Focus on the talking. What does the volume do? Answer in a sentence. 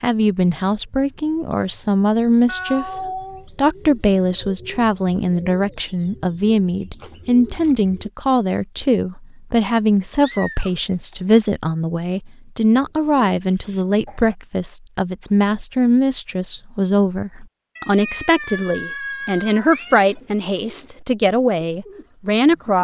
The volume of the talking stays about the same.